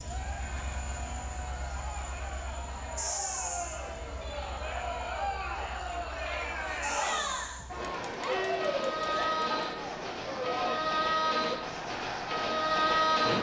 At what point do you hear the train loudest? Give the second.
13 s.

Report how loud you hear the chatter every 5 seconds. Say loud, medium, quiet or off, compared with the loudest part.
medium, loud, loud.